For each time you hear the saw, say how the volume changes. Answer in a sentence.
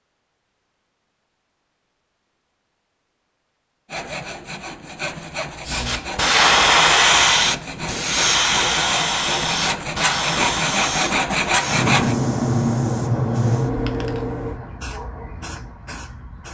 You can hear the saw from 3.9 to 12.2 s, getting louder.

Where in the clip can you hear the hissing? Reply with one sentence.
You can hear the hissing from 5.7 to 16.4 s.